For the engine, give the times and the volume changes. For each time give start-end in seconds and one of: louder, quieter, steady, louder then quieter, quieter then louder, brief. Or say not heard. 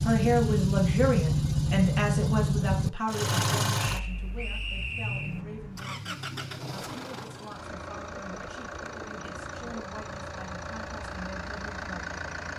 0.0-12.5 quieter.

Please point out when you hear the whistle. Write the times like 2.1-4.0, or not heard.
3.9-5.4.